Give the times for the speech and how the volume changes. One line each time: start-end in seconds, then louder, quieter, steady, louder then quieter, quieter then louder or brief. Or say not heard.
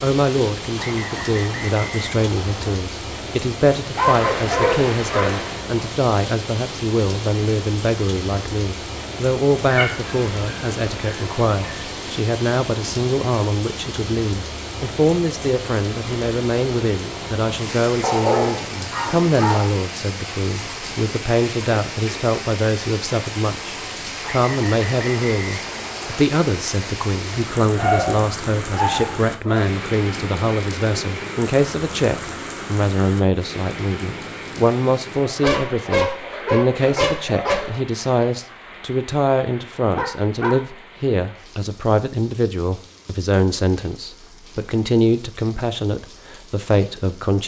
0.0-47.4 steady.